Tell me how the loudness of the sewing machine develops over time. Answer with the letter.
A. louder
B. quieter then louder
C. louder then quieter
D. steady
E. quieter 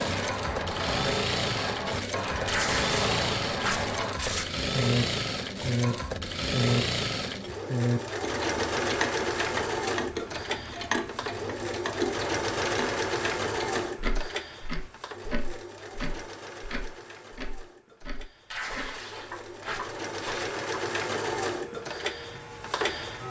B.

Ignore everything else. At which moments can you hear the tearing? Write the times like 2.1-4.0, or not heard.
2.5-4.5, 18.5-20.5.